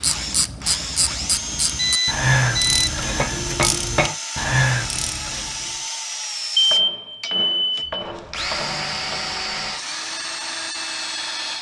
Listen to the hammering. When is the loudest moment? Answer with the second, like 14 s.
4 s.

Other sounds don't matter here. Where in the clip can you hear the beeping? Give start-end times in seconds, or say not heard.
1.8-3.0, 6.7-8.1.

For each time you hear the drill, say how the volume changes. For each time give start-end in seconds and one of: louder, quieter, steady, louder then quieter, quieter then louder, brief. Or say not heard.
0.0-11.5 steady.